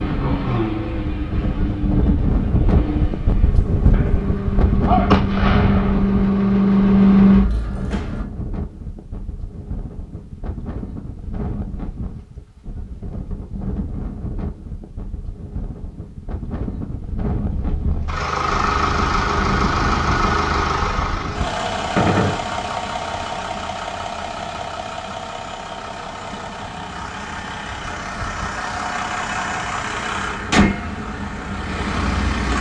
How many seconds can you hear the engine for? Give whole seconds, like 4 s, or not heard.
23 s.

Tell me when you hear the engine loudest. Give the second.
7 s.